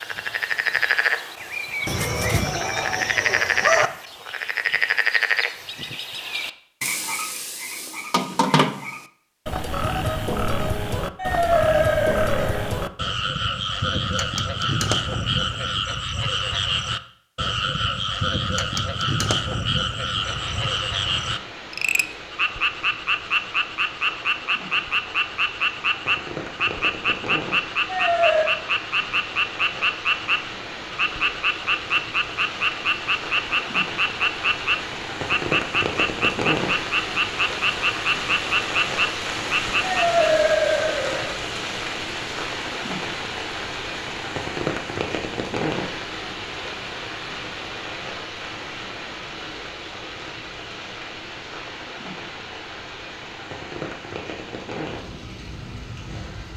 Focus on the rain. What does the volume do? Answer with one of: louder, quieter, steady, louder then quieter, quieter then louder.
louder then quieter.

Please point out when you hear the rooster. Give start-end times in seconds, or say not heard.
1.9-3.9.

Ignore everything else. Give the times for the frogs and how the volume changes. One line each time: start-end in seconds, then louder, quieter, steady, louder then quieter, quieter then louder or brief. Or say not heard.
0.0-40.2 steady.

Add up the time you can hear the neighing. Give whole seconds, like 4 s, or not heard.
4 s.